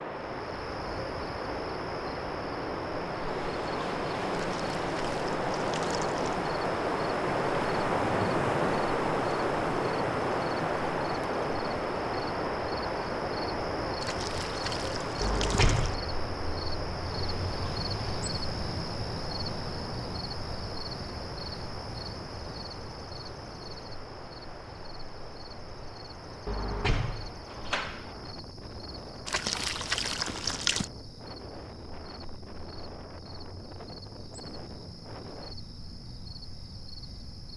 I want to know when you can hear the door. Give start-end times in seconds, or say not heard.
15.2-16.1, 26.4-28.2.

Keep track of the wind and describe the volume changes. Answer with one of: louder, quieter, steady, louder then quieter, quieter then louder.
quieter.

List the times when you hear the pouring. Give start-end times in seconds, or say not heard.
4.3-6.4, 14.0-15.9, 29.2-30.9.